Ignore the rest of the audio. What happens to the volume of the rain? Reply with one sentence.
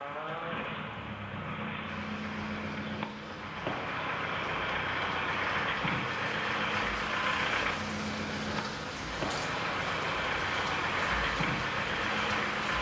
The loudness of the rain goes up.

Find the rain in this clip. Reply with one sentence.
You can hear the rain from 0.0 to 12.7 s.